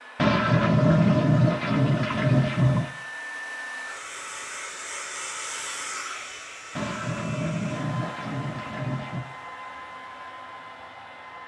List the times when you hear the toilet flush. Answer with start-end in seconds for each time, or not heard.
0.1-2.9, 6.8-9.2.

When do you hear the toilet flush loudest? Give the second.
1 s.